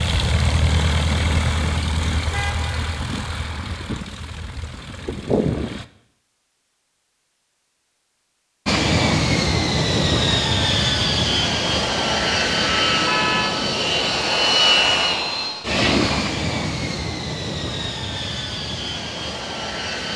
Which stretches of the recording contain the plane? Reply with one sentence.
The plane can be heard from 0.0 to 5.8 s and from 8.7 to 20.1 s.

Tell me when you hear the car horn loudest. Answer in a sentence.
The loudest moment of the car horn is at 13 seconds.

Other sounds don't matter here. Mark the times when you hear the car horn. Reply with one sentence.
You can hear the car horn from 2.3 to 2.8 s and from 12.6 to 13.6 s.